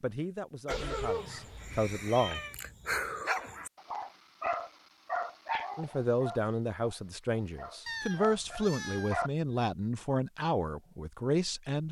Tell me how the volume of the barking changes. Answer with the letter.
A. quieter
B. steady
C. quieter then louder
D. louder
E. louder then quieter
E.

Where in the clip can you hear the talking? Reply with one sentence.
The talking can be heard from 0.0 to 2.5 s and from 5.8 to 11.8 s.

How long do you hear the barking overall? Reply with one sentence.
The barking can be heard for 9 seconds in total.